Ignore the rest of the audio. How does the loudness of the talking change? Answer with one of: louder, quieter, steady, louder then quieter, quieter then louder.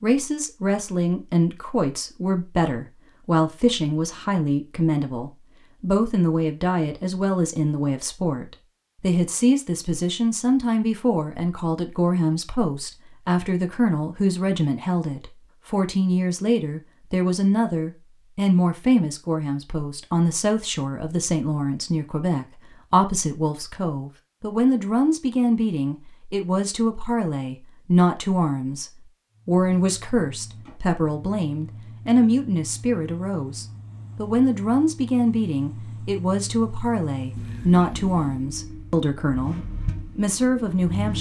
steady.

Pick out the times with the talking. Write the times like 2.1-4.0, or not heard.
0.0-41.1.